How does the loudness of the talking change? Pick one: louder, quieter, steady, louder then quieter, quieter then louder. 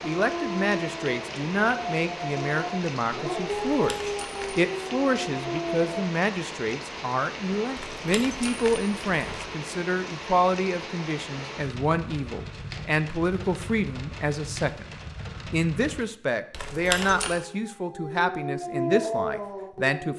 steady.